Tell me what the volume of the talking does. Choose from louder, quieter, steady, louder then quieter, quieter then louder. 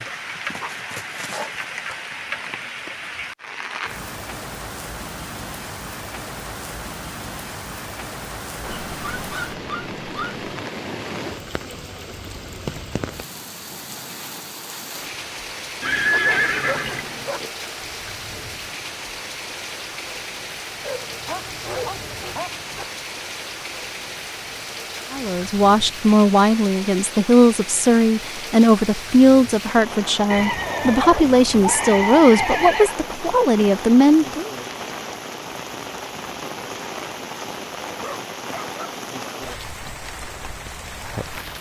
steady.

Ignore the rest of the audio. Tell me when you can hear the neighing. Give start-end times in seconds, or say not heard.
15.8-17.4, 30.3-33.0.